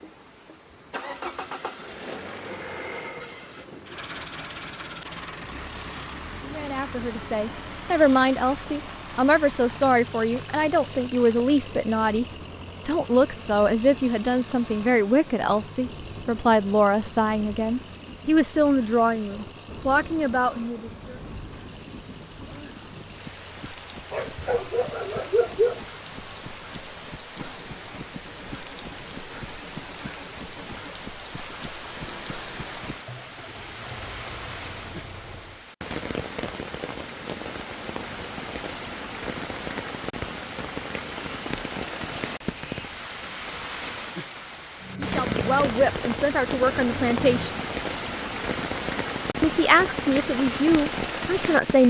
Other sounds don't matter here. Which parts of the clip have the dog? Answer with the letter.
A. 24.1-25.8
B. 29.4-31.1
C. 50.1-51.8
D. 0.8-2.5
A.